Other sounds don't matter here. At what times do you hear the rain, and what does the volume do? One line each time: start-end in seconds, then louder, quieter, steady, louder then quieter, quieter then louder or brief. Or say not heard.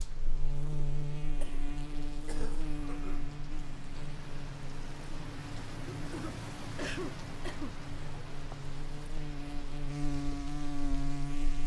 0.0-11.6 louder then quieter.